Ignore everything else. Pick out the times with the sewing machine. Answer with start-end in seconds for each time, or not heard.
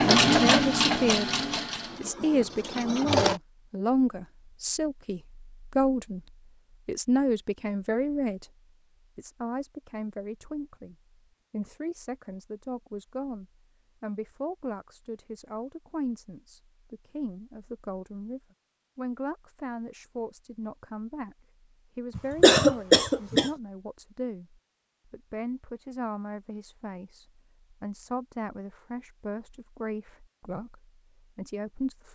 0.0-3.4.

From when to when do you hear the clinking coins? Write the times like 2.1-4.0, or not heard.
not heard.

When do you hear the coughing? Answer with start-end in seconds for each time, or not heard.
22.1-23.5.